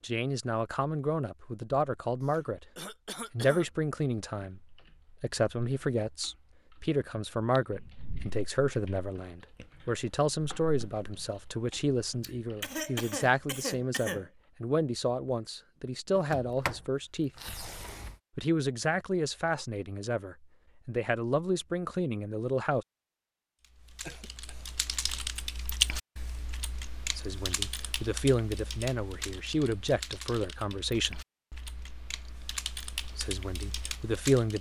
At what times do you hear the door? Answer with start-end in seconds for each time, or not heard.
16.1-18.2.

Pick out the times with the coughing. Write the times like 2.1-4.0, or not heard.
2.2-3.7, 12.2-14.3, 24.0-24.6.